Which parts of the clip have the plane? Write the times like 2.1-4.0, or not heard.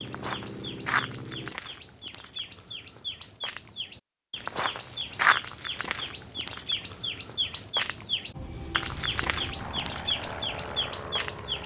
0.0-1.6, 8.3-11.6.